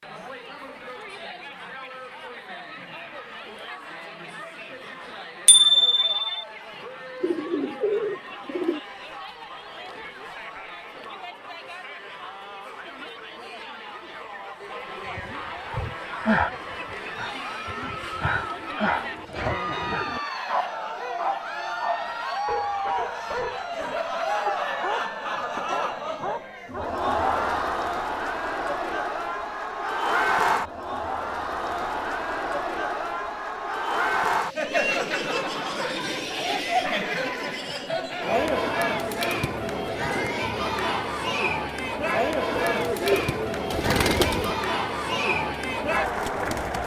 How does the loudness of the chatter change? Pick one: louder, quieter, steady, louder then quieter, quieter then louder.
louder.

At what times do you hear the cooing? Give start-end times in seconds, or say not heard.
7.2-8.8, 17.8-20.2, 42.5-44.5.